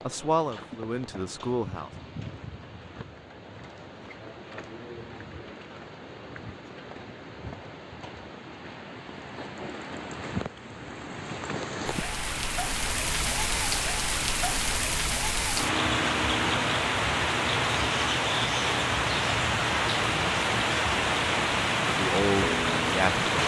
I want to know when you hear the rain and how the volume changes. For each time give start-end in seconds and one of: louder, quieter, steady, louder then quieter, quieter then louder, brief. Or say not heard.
0.0-23.4 louder.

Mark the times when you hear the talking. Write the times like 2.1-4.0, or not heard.
0.1-1.9, 21.9-23.3.